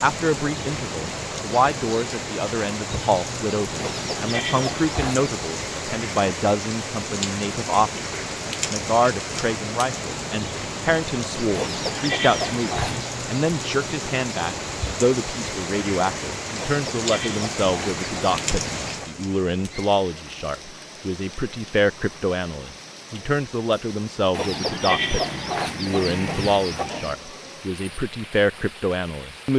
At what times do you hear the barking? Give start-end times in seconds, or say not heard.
not heard.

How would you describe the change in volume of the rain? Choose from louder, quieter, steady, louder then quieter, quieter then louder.
quieter.